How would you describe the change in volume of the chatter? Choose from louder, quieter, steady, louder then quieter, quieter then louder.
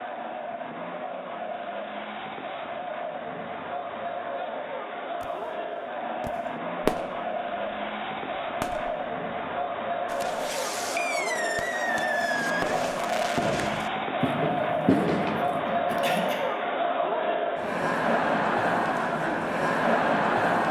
louder.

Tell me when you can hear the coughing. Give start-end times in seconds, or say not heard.
15.8-16.4.